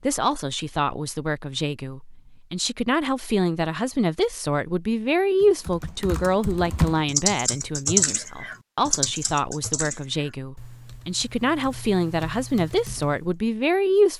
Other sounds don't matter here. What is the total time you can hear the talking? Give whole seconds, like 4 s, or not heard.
14 s.